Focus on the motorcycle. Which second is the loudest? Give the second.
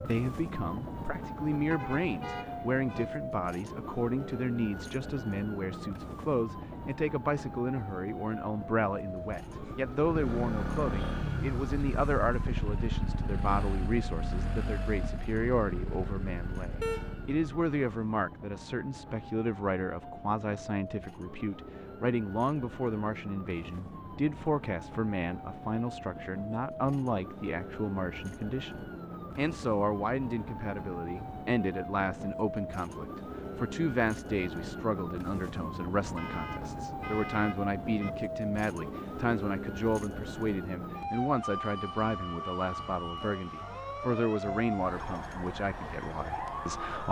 11 s.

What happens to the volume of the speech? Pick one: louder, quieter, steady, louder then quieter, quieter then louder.
steady.